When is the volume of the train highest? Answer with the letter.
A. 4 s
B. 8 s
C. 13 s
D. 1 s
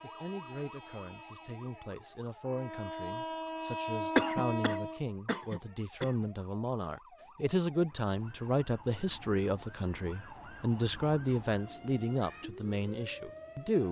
A.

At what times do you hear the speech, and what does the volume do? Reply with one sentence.
You can hear the speech from 0.0 to 13.8 s, getting louder.